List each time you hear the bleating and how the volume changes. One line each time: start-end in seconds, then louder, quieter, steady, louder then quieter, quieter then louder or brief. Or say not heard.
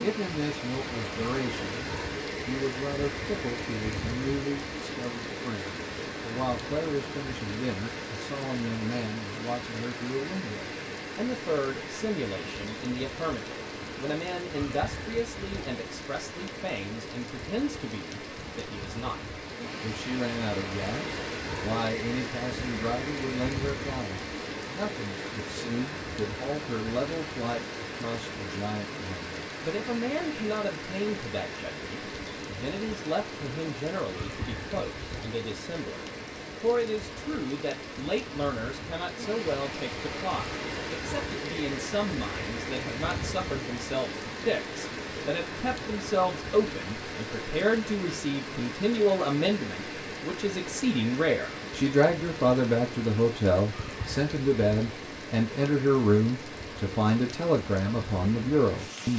not heard.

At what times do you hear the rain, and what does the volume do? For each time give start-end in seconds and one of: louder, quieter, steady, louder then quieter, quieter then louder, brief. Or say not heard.
0.0-59.1 steady.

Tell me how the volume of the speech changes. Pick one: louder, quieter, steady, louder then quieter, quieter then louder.
louder.